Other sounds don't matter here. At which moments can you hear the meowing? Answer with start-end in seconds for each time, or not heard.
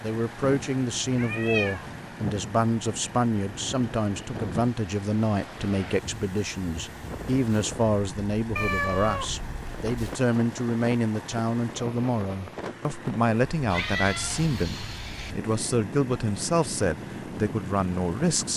1.1-1.9, 8.6-10.2, 13.7-15.3.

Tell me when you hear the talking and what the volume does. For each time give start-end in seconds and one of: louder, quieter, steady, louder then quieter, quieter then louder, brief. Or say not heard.
0.0-18.5 steady.